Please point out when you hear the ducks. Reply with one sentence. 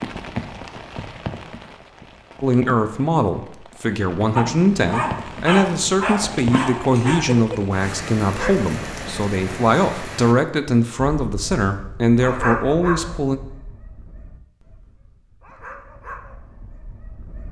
You can't hear the ducks here.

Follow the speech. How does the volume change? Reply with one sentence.
The loudness of the speech stays about the same.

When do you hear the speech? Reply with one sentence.
You can hear the speech from 2.4 to 13.4 s.